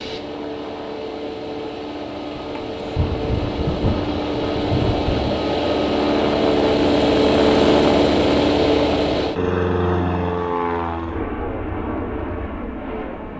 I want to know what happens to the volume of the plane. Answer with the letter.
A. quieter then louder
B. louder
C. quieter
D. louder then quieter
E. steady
D.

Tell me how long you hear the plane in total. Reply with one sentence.
The plane can be heard for 13 seconds in total.